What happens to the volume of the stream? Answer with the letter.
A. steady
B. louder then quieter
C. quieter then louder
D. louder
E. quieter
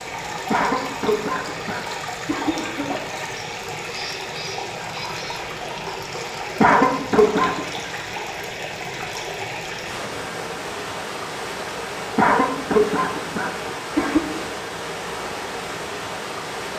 A.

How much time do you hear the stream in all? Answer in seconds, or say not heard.
17 s.